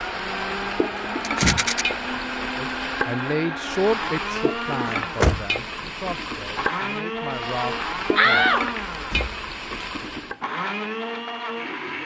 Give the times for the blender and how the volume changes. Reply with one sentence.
The blender can be heard from 0.0 to 12.0 s, at a steady volume.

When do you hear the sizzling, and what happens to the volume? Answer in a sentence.
You can hear the sizzling from 0.0 to 10.4 s, at a steady volume.